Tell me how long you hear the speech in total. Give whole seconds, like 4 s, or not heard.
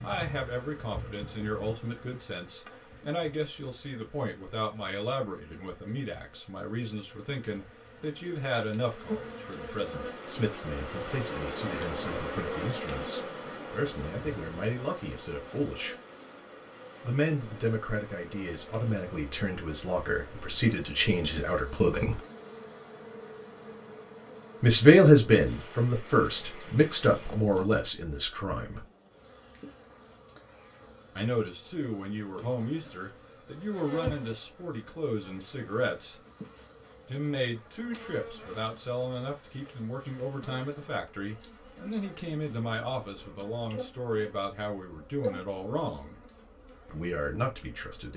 41 s.